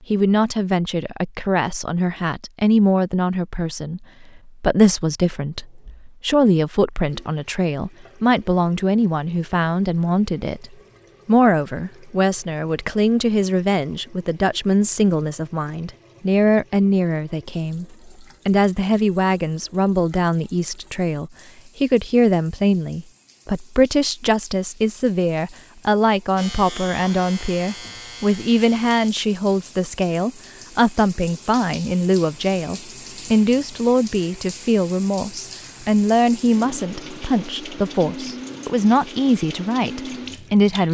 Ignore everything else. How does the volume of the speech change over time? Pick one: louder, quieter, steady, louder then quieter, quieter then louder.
steady.